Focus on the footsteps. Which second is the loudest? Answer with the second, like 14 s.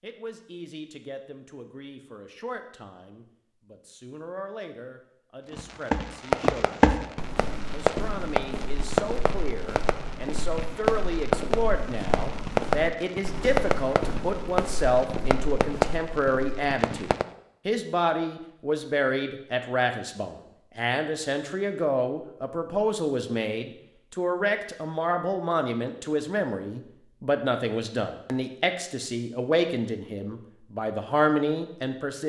7 s.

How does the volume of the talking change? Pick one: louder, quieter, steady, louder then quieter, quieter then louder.
louder.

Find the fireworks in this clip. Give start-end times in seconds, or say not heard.
5.5-17.2.